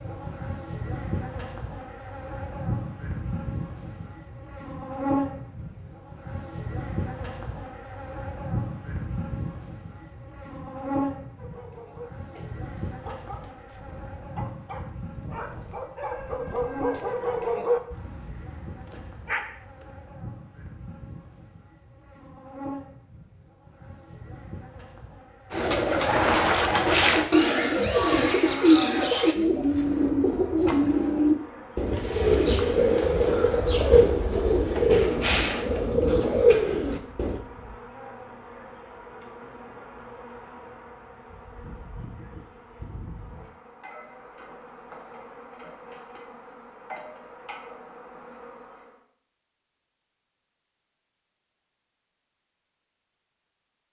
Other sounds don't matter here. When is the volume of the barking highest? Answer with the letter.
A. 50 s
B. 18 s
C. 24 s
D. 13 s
B.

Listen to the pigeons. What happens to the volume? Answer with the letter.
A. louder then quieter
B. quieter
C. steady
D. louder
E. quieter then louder
C.